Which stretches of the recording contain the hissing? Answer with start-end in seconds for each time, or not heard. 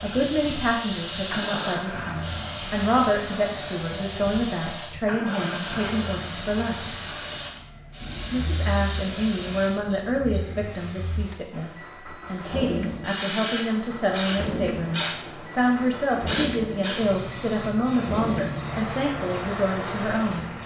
0.0-20.6.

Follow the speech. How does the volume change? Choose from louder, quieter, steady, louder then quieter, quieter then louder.
steady.